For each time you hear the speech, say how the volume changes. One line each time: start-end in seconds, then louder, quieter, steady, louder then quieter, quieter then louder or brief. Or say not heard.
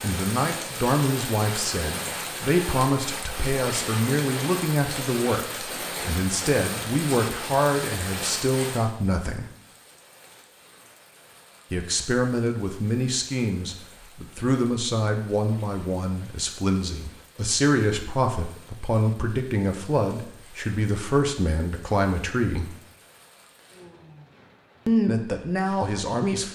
0.0-9.4 steady
11.7-22.7 steady
24.9-26.5 brief.